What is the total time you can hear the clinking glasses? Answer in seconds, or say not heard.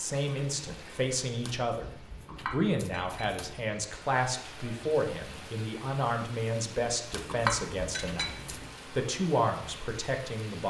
2 s.